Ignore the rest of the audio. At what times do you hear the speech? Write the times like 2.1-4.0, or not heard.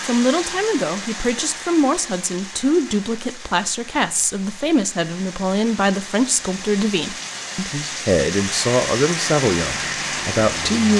0.0-10.9.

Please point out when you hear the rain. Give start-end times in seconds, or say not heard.
0.0-10.9.